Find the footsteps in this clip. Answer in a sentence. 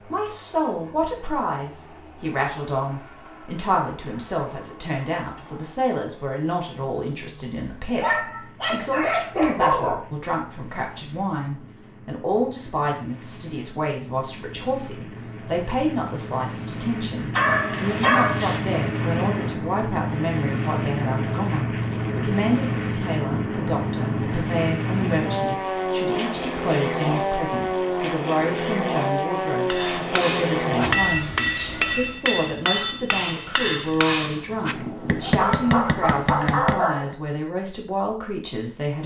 The footsteps can't be heard in this clip.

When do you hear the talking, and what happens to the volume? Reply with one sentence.
The talking can be heard from 0.0 to 39.0 s, at a steady volume.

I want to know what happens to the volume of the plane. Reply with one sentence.
The volume of the plane goes up.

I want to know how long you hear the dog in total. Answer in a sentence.
You can hear the dog for 6 seconds altogether.